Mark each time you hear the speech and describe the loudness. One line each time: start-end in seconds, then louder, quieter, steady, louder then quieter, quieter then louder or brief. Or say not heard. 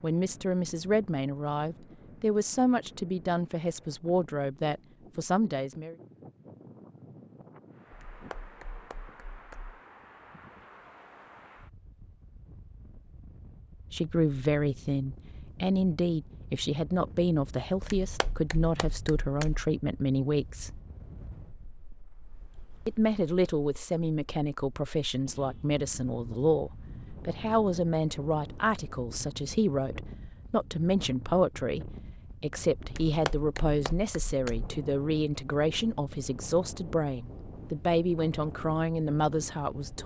0.0-6.0 steady
13.9-20.8 steady
22.9-40.0 steady.